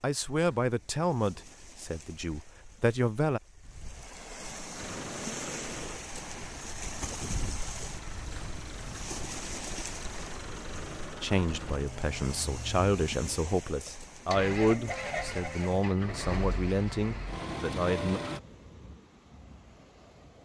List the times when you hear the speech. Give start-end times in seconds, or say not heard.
0.0-3.4, 11.2-18.2.